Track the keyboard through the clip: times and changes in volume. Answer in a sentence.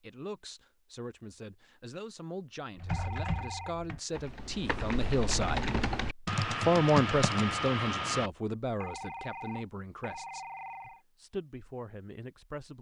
The keyboard can be heard from 2.8 to 8.3 s, getting louder.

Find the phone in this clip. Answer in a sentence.
The phone can be heard from 2.9 to 3.9 s and from 8.8 to 11.0 s.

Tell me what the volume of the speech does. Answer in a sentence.
The volume of the speech goes up, then down.